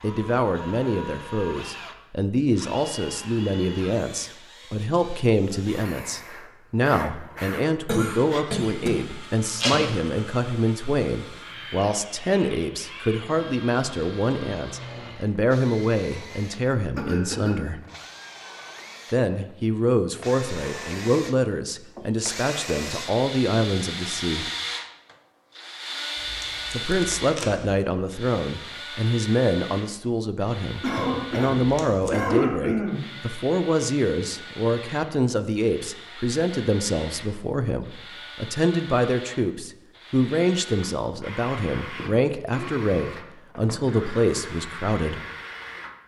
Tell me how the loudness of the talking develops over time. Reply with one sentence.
The volume of the talking stays about the same.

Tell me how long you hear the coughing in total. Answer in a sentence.
You can hear the coughing for 4 seconds altogether.